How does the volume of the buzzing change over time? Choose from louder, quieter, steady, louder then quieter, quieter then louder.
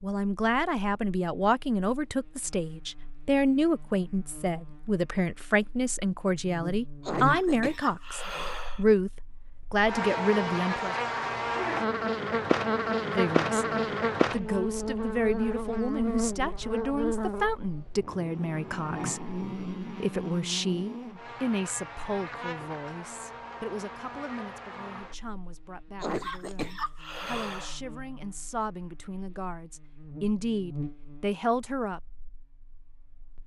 louder then quieter.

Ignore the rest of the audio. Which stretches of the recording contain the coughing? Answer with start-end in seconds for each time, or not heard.
7.0-8.8, 26.0-27.8.